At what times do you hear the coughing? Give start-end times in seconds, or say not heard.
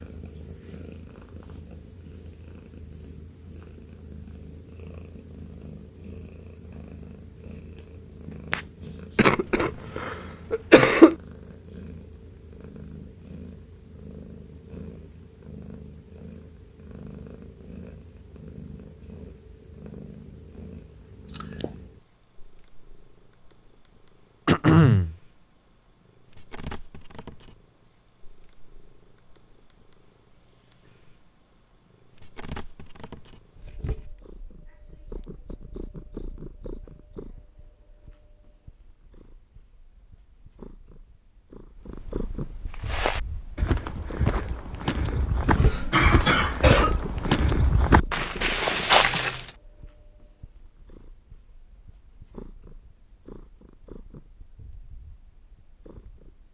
9.2-11.2, 24.4-25.1, 45.5-47.0.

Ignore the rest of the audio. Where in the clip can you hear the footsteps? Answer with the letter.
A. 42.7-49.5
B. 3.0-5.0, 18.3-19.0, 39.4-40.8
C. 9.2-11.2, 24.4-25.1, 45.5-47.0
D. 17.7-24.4
A.